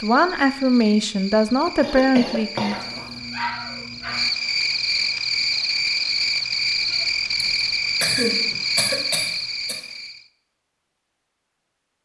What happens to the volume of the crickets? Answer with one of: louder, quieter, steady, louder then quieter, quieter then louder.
louder.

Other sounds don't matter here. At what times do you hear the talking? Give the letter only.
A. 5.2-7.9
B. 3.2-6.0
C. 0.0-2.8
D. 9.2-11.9
C.